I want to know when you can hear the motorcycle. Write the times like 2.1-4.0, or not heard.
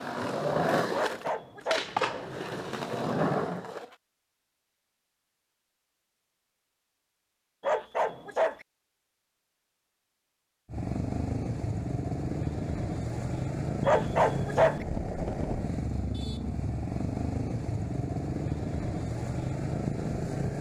10.7-20.5.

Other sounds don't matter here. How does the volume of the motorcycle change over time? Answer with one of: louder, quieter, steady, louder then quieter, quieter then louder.
steady.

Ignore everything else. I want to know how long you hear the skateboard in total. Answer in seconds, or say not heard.
4 s.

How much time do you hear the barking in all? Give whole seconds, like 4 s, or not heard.
3 s.